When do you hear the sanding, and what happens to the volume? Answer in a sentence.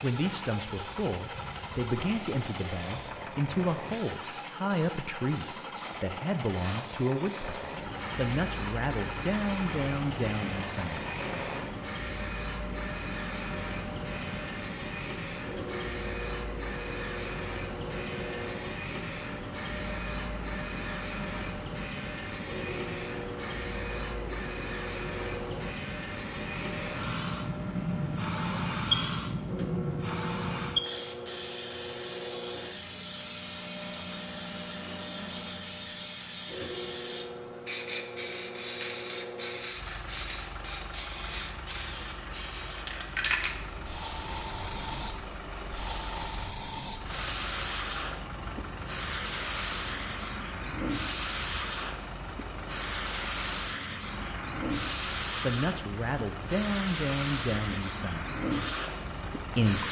You can't hear the sanding here.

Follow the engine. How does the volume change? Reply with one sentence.
The volume of the engine stays about the same.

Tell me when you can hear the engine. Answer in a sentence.
The engine can be heard from 0.0 to 59.8 s.